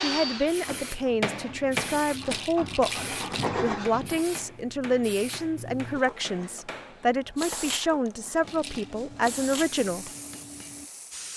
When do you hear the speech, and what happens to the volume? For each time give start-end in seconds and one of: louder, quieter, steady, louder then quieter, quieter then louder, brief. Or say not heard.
0.0-10.1 steady.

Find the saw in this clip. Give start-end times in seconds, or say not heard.
0.0-4.2.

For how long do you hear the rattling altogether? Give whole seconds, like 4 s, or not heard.
2 s.